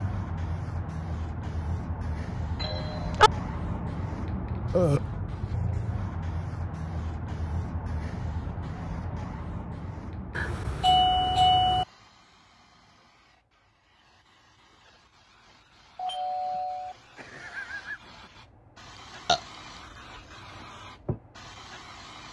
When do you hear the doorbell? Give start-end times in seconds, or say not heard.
2.6-3.3, 10.3-11.8, 15.9-18.0.